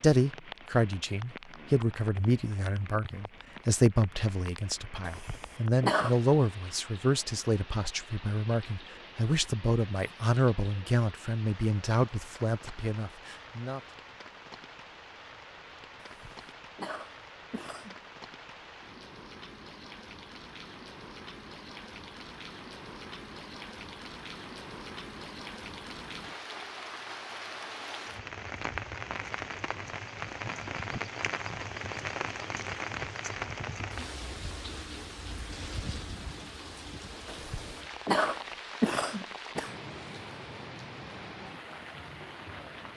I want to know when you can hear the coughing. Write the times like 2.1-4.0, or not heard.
5.0-6.2, 16.0-17.9, 37.2-39.7.